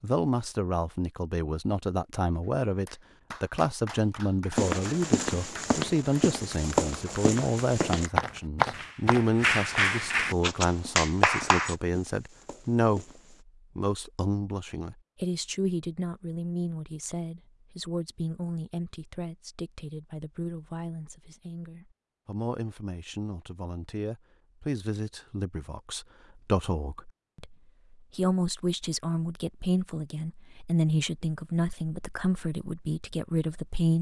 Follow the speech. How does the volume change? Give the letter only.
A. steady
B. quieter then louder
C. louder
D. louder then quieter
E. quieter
B.